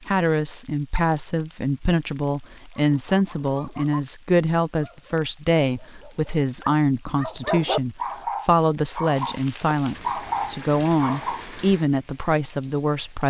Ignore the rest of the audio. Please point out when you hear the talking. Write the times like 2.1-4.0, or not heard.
0.1-13.2.